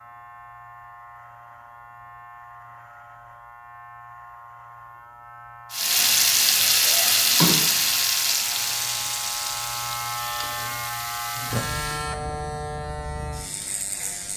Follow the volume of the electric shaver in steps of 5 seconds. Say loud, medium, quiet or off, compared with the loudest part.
quiet, medium, loud.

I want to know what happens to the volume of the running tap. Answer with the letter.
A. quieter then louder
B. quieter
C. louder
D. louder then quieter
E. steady
B.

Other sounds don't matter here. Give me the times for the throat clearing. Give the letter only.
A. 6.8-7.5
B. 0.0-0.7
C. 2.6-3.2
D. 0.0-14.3
A.